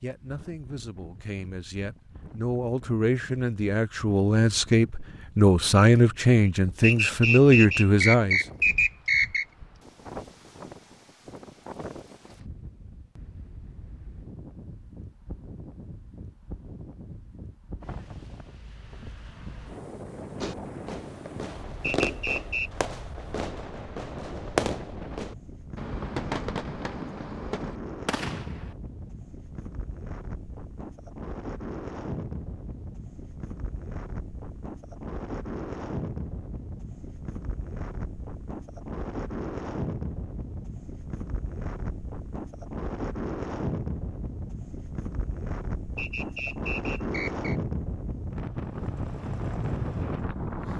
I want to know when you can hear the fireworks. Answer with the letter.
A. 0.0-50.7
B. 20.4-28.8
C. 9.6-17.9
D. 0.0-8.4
B.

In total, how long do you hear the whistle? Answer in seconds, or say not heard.
5 s.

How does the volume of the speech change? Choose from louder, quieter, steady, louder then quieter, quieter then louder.
louder.